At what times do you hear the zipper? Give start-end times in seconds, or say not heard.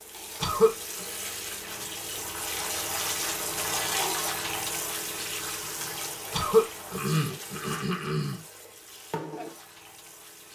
not heard.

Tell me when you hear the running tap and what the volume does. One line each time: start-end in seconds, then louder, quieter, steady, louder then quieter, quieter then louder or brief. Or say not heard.
0.0-10.5 louder then quieter.